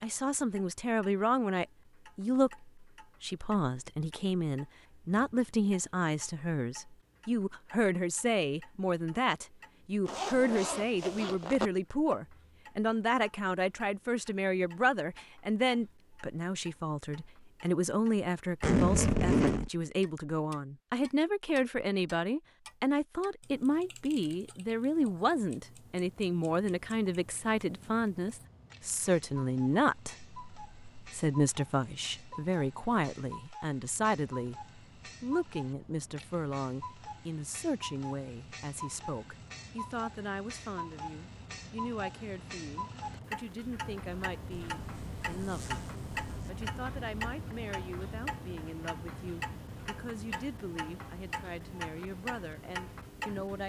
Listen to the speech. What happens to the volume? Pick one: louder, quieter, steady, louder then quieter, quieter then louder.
quieter.